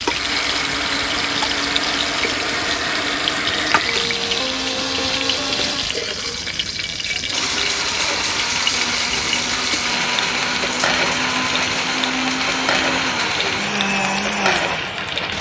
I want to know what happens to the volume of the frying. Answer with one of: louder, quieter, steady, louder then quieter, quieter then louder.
steady.